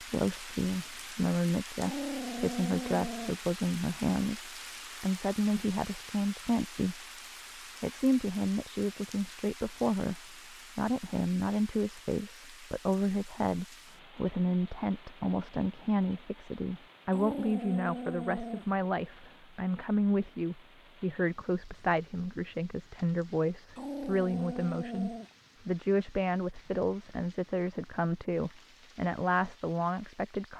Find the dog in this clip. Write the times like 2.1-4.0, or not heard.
1.8-3.4, 17.1-18.6, 23.8-25.3.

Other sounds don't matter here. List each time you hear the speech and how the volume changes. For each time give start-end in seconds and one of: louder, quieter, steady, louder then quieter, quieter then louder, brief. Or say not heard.
0.0-7.0 steady
7.8-30.5 steady.